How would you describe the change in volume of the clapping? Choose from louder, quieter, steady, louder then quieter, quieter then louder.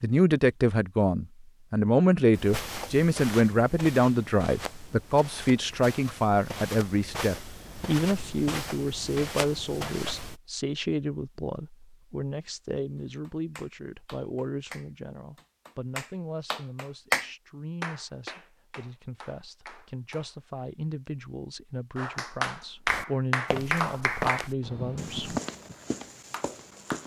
louder then quieter.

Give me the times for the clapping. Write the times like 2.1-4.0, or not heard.
12.9-20.4, 21.9-27.0.